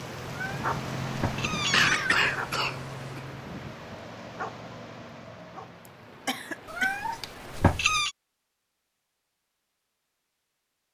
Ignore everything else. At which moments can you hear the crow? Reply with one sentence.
The crow can't be heard in this clip.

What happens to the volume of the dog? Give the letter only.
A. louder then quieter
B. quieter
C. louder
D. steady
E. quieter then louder
B.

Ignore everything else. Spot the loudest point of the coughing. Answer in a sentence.
The loudest moment of the coughing is at 2 seconds.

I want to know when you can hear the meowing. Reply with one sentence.
The meowing can be heard from 0.3 to 2.2 s and from 6.7 to 8.1 s.